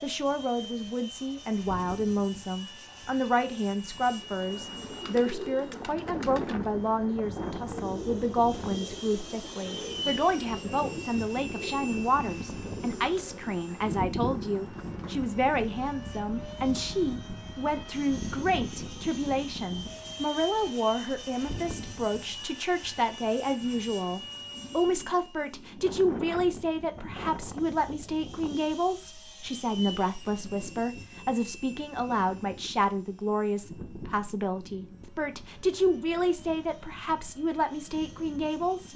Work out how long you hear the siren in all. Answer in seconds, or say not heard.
not heard.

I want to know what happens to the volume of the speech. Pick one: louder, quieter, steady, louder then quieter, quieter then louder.
steady.